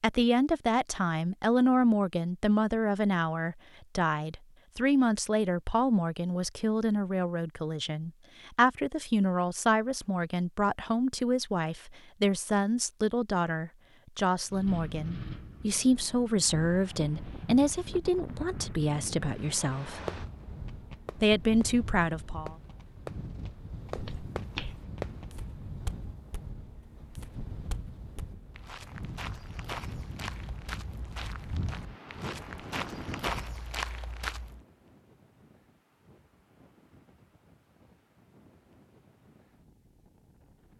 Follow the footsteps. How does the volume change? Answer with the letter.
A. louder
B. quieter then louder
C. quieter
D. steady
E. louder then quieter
B.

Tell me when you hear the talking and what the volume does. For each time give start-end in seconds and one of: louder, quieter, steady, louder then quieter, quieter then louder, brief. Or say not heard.
0.0-20.0 steady
21.1-22.6 brief.